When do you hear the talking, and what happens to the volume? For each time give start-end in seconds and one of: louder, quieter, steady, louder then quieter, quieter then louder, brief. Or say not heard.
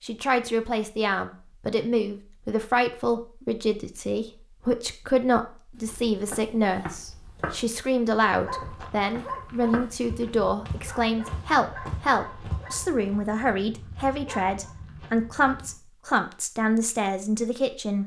0.0-18.0 steady.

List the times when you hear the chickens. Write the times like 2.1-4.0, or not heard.
not heard.